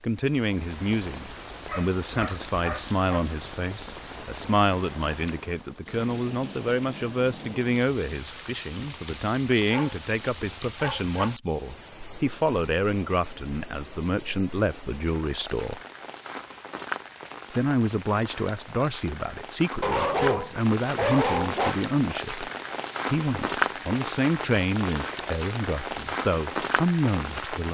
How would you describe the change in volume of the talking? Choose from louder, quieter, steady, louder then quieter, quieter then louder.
steady.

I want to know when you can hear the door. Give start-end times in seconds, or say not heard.
not heard.